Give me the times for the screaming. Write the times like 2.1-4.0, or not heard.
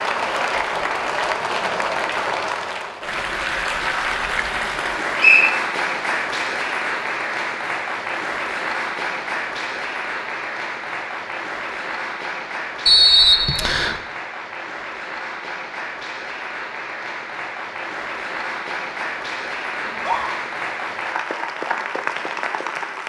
19.8-20.3.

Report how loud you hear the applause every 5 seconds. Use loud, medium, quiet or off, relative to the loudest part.
loud, loud, medium, medium, loud.